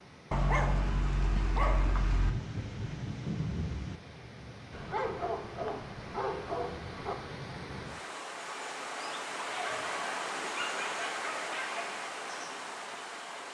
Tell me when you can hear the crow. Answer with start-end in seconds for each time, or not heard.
not heard.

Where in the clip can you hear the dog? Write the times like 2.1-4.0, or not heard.
0.3-2.3, 4.7-7.2, 9.3-11.9.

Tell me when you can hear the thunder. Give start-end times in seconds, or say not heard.
1.9-4.0.